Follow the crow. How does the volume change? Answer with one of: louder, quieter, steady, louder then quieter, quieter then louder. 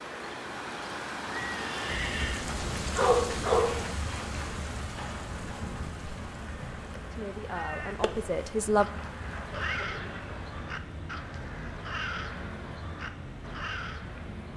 steady.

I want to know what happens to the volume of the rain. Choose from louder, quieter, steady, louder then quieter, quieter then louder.
quieter.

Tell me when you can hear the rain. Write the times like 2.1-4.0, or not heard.
0.0-14.5.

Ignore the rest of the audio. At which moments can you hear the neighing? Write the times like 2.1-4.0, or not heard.
1.2-2.5, 9.5-10.4.